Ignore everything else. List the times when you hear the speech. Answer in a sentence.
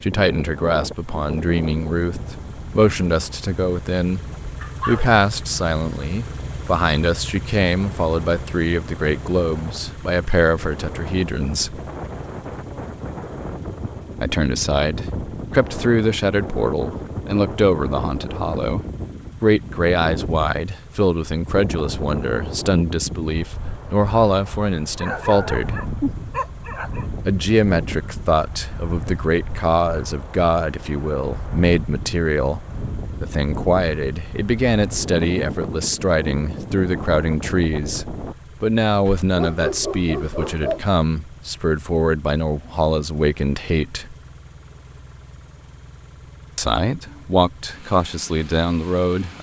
You can hear the speech from 0.0 to 4.2 s, from 4.8 to 11.8 s, from 14.2 to 25.8 s, from 27.2 to 32.6 s, from 33.2 to 44.1 s and from 46.5 to 49.3 s.